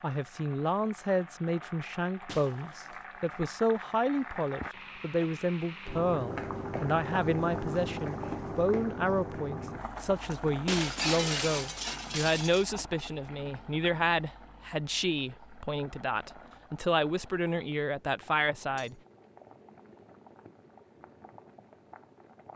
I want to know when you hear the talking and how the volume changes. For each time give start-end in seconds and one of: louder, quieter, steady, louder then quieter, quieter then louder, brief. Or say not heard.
0.0-18.9 steady.